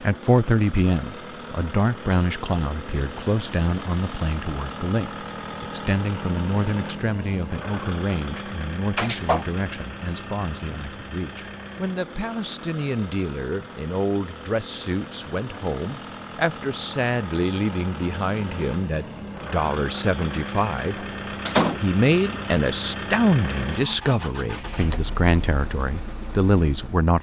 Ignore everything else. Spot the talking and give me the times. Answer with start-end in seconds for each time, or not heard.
0.0-21.1, 21.8-27.1.